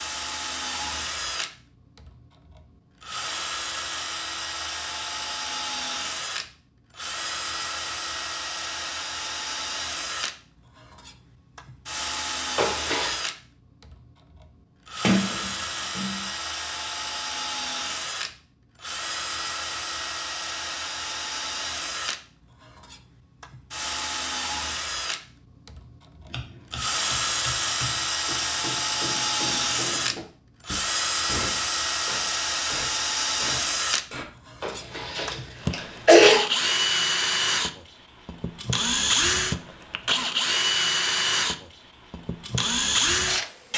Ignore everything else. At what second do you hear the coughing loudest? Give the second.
36 s.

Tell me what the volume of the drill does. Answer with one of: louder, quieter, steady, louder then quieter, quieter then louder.
louder.